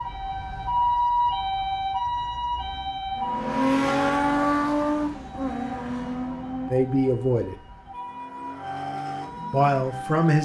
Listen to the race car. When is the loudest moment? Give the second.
4 s.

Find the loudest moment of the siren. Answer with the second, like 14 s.
1 s.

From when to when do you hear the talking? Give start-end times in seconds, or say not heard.
6.7-7.6, 9.5-10.3.